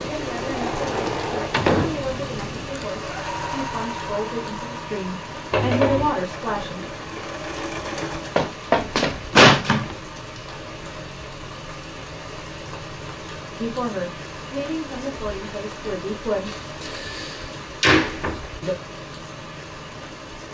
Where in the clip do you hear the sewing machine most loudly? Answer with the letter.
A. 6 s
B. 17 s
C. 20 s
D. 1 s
D.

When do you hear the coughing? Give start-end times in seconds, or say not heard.
5.5-6.2.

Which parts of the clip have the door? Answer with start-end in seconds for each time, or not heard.
1.5-2.1, 8.0-9.9, 16.4-18.4.